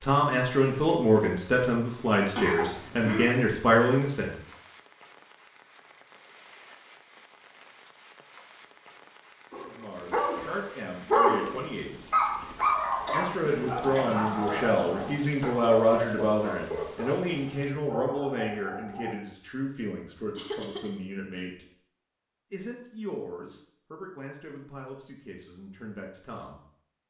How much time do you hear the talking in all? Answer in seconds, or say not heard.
19 s.